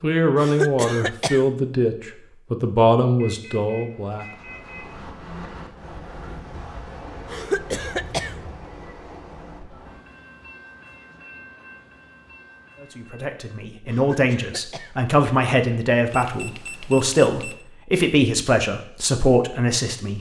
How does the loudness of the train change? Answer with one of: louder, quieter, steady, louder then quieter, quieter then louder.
quieter.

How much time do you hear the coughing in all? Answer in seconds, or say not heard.
3 s.